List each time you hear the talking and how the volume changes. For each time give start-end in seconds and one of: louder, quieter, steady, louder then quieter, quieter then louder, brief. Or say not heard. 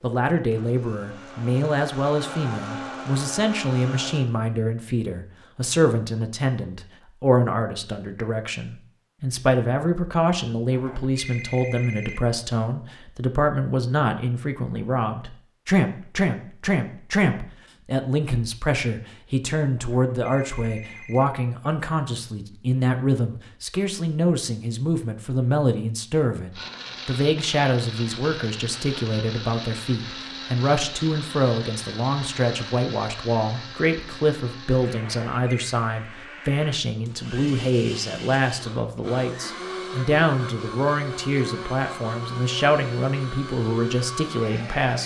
0.0-45.0 steady.